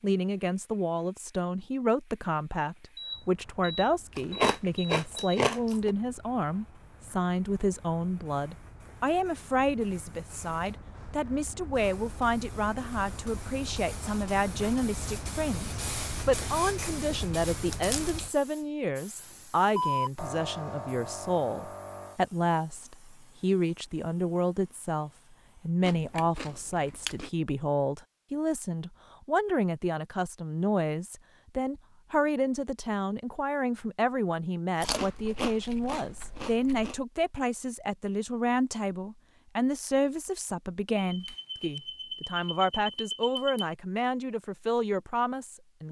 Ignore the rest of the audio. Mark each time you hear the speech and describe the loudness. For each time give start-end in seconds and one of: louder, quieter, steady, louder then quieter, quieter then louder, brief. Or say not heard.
0.0-45.8 steady.